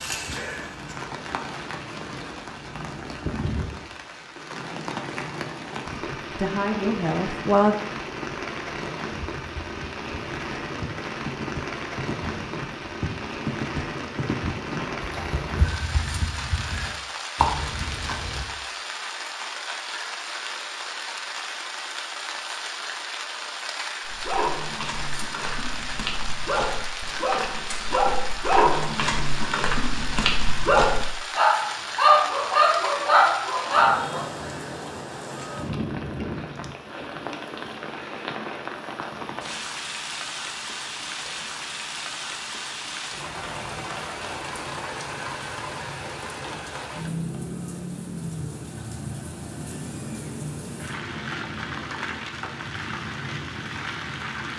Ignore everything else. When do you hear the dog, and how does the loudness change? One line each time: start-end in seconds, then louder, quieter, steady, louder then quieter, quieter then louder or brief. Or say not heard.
24.1-34.2 louder.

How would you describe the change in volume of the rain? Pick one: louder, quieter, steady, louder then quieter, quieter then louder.
steady.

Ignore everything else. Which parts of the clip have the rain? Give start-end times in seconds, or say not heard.
0.0-54.5.